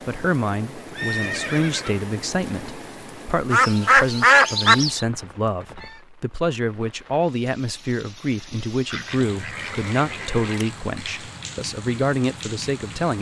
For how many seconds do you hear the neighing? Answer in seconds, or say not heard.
3 s.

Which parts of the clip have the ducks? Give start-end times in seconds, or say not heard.
3.5-5.0, 8.9-10.7.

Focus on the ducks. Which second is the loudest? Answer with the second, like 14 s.
4 s.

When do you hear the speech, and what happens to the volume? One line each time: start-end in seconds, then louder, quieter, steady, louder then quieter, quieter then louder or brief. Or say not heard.
0.1-13.1 steady.